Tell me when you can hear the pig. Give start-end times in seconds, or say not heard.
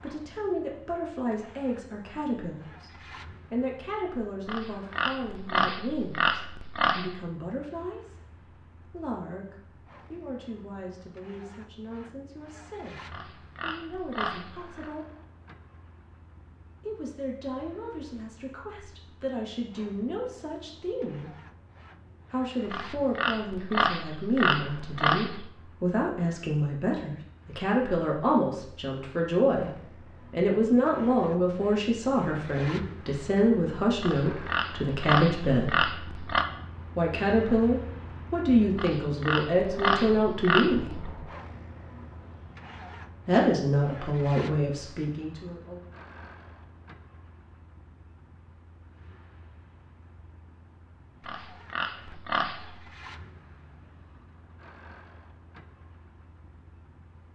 4.5-7.2, 13.1-14.9, 22.6-25.5, 34.0-36.5, 38.8-41.0, 51.2-52.9.